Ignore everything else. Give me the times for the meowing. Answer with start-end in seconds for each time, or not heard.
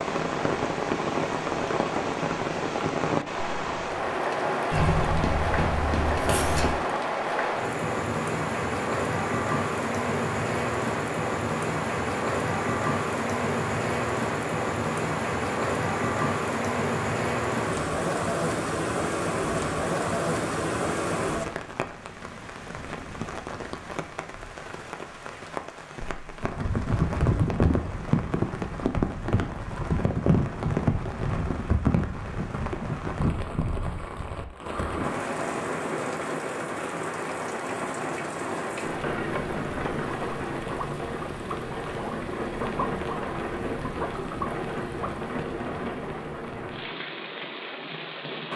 4.7-6.7.